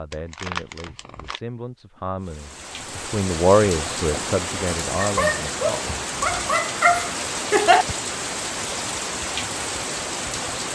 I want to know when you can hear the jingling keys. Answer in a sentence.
The jingling keys can't be heard in this clip.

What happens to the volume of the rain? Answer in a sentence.
The loudness of the rain stays about the same.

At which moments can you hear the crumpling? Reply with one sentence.
You can hear the crumpling from 0.1 to 1.4 s.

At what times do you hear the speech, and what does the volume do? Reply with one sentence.
The speech can be heard from 0.0 to 6.0 s, getting louder then quieter.